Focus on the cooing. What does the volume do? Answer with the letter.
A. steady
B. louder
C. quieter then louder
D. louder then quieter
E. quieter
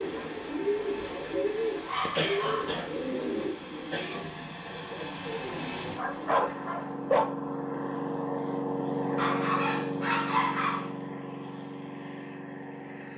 E.